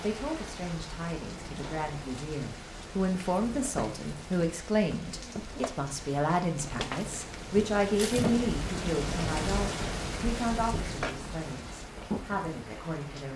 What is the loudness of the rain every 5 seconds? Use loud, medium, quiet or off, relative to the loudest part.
medium, loud, loud.